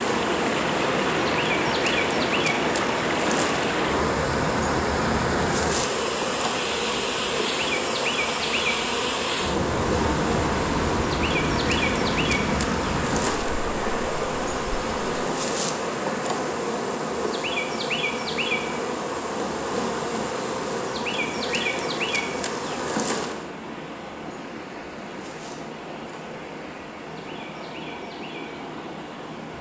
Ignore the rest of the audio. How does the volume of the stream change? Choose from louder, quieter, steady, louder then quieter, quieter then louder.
quieter.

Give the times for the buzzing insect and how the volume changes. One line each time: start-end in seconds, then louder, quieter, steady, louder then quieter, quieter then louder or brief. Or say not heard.
0.0-29.5 quieter.